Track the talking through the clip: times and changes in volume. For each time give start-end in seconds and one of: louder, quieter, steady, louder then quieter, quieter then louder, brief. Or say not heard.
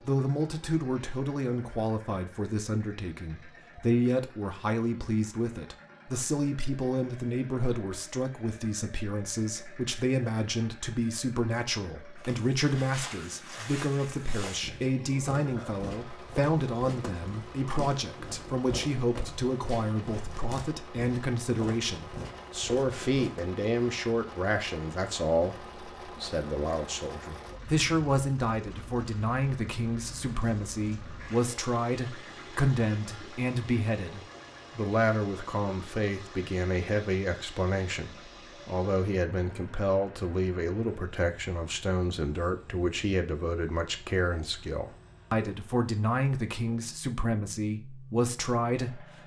0.1-49.0 steady.